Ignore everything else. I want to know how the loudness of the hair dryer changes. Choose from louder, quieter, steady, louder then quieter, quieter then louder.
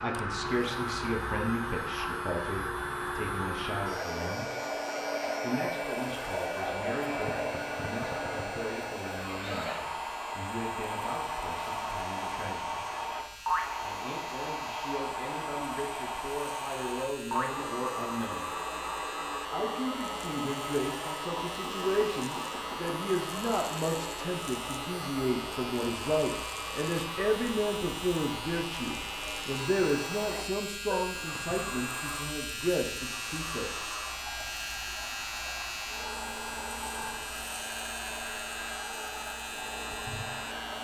quieter.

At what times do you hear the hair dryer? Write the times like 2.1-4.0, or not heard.
0.0-40.7.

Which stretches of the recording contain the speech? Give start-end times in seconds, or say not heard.
0.0-4.5, 5.4-12.8, 13.8-18.5, 19.5-33.7.